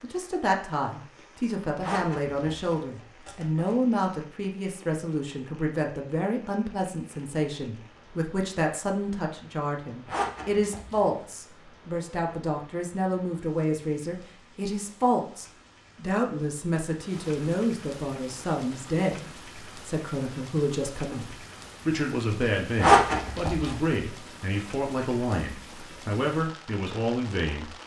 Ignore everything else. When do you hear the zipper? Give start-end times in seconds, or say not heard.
1.8-3.8, 10.1-11.1, 22.8-23.8.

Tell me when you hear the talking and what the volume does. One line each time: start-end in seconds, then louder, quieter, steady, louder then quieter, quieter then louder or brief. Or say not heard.
0.0-27.7 steady.